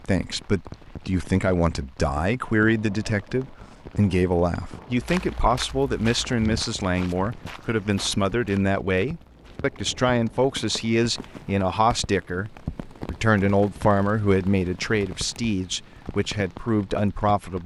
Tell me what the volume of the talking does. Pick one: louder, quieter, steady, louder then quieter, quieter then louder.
steady.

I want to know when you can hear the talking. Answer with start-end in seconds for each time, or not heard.
0.1-17.6.